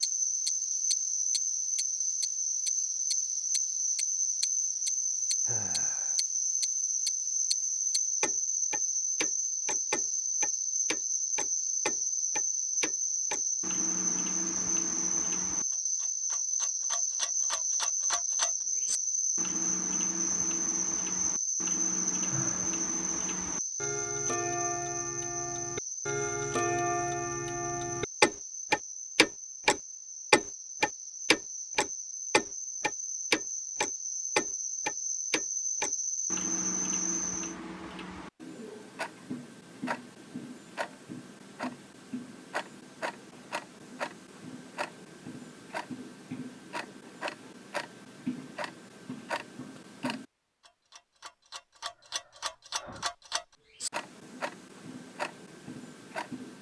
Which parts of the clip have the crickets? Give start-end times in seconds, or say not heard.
0.0-37.5.